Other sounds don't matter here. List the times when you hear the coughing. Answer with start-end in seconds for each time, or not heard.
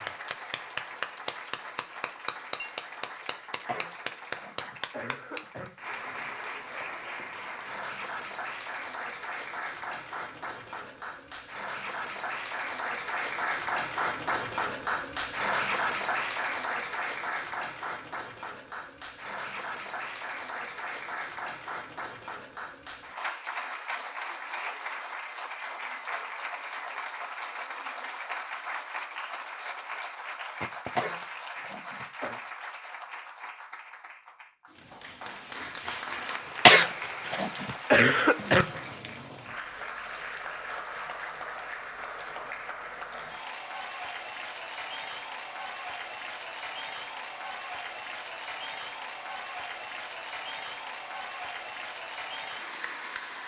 3.6-5.7, 30.9-32.4, 36.6-38.6.